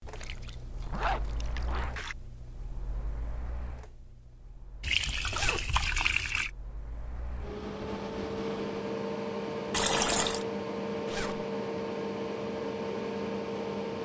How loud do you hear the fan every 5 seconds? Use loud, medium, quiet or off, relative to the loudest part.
quiet, loud, loud.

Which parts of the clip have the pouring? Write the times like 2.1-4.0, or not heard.
0.1-2.1, 4.8-6.5, 9.7-10.4.